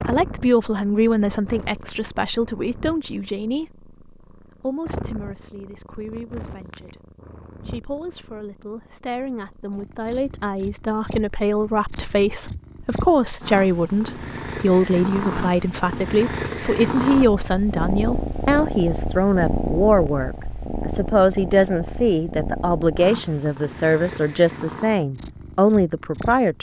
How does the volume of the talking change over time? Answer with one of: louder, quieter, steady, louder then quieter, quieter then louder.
quieter then louder.